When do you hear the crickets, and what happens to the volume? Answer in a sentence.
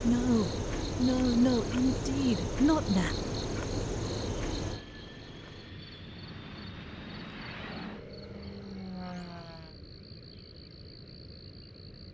The crickets can be heard from 0.0 to 12.0 s, getting quieter.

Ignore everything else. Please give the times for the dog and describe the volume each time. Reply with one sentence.
You can't hear the dog here.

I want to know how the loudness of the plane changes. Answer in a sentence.
The volume of the plane goes up.